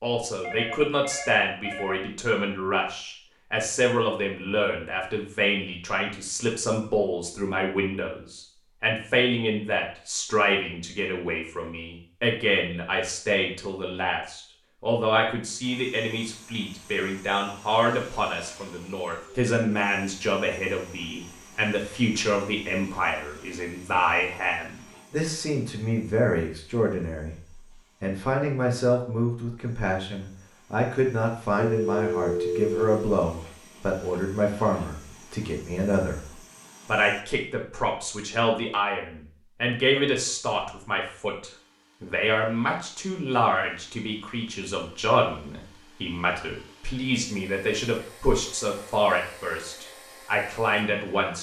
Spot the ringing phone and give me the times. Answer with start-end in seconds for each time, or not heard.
0.4-2.0, 31.6-33.0.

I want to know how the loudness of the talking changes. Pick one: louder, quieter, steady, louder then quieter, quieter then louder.
steady.